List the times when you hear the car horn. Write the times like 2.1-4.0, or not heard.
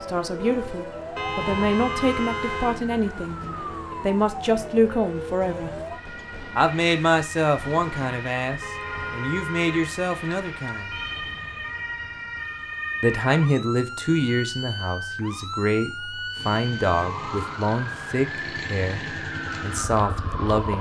1.1-2.8, 8.6-9.9, 17.1-17.5.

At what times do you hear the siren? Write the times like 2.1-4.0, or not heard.
0.0-20.7.